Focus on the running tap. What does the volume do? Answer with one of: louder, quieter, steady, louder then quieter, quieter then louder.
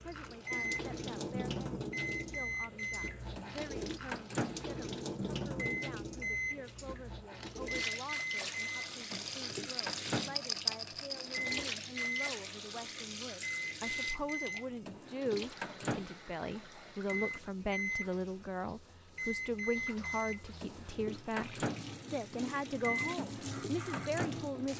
quieter then louder.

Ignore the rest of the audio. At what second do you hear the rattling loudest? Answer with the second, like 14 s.
11 s.